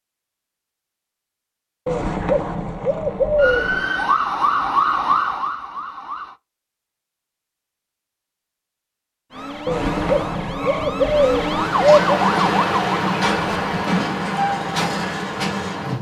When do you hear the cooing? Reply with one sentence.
You can hear the cooing from 1.9 to 3.9 s and from 9.7 to 12.2 s.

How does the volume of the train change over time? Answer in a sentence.
The volume of the train stays about the same.